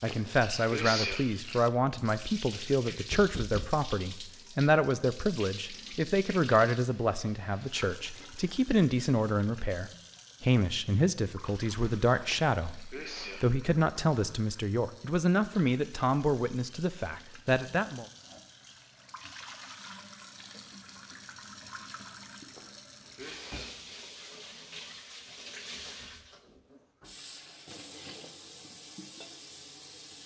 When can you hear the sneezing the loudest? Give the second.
1 s.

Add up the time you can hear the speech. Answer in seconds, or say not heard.
18 s.